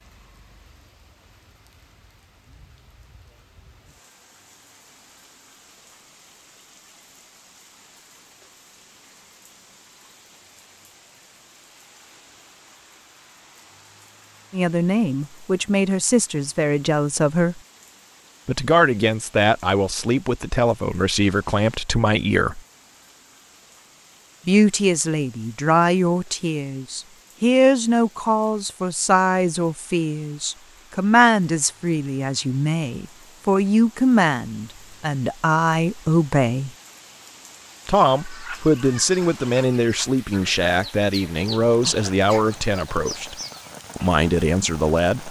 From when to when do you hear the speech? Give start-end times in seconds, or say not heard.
14.5-17.6, 18.4-22.6, 24.4-36.7, 37.9-43.4, 44.0-45.2.